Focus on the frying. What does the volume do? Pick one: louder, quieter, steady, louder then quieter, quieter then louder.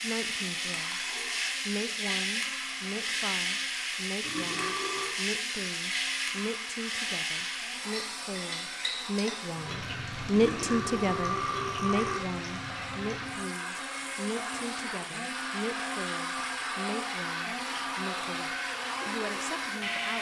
quieter.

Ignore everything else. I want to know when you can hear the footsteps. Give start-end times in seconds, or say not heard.
not heard.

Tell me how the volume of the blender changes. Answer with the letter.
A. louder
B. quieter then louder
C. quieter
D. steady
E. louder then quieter
A.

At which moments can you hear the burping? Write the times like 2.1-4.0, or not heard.
4.2-5.2, 10.3-12.2.